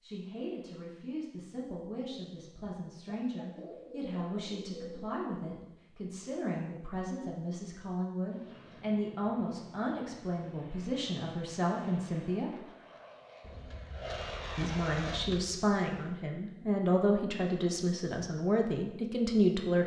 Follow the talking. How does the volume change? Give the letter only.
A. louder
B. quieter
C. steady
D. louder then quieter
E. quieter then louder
A.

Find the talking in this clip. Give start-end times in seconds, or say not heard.
0.0-12.7, 14.6-19.8.